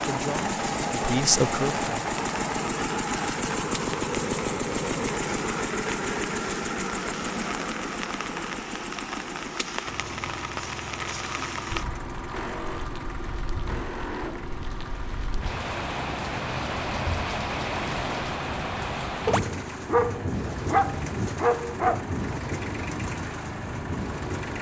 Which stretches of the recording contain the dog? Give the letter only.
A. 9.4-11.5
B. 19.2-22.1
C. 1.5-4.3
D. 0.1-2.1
B.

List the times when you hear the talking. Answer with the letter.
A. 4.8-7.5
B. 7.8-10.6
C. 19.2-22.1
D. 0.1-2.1
D.